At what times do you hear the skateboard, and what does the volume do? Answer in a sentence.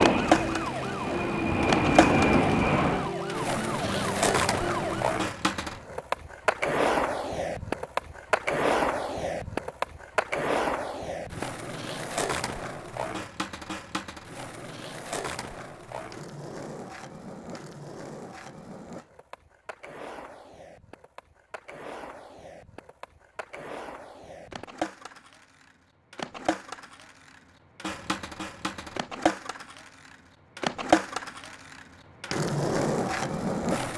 The skateboard can be heard from 0.0 to 33.9 s, getting quieter then louder.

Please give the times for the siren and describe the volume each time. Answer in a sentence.
The siren can be heard from 0.0 to 5.1 s, at a steady volume.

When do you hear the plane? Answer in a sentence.
The plane can be heard from 0.0 to 3.1 s.